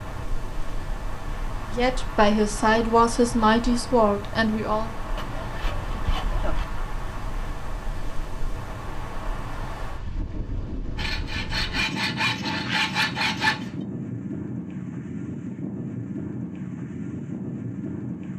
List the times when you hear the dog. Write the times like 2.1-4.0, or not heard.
not heard.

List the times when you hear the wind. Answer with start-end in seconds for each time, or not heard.
0.0-18.3.